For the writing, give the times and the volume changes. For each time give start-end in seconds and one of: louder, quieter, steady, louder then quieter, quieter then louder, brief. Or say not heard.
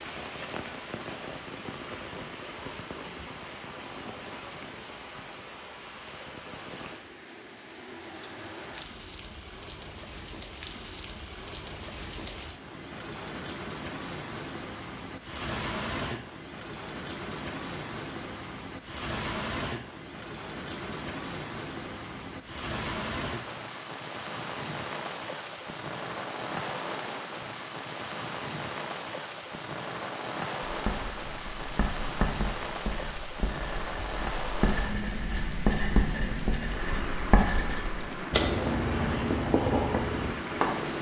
30.6-40.9 louder.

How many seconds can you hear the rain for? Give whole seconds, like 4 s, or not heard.
41 s.